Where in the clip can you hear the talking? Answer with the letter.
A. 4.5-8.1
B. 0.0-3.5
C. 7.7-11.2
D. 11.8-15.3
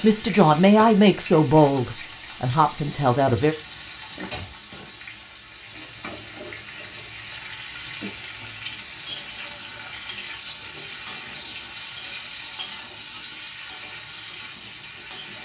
B.